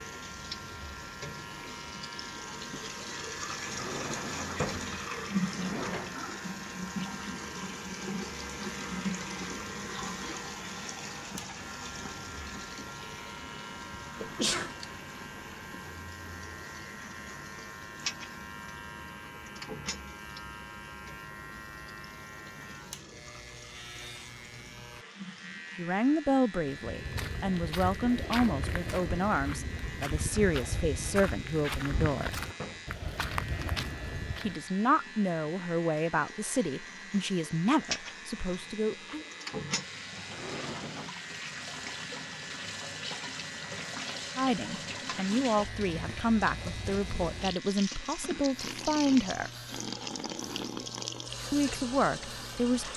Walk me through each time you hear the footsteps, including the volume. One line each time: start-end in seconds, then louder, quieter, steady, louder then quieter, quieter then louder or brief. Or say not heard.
26.6-34.7 steady.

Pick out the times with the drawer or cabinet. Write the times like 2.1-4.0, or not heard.
3.5-6.2, 31.8-32.9, 40.1-41.1.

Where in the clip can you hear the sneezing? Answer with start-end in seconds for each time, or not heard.
14.2-14.8.